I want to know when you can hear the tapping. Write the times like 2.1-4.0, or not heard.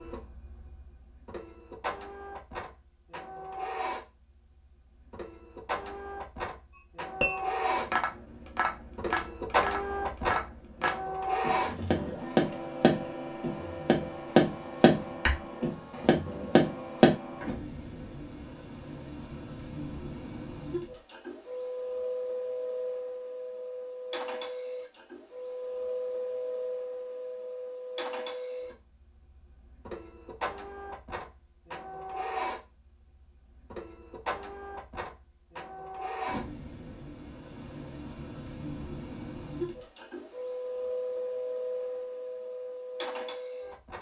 7.2-17.1.